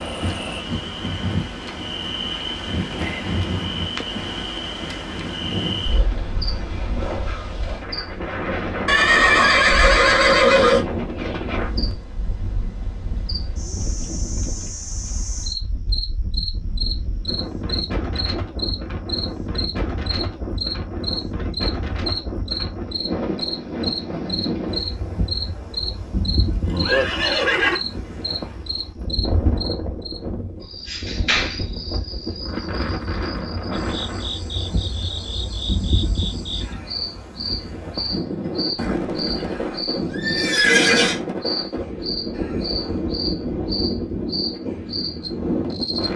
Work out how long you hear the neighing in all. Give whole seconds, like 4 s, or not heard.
6 s.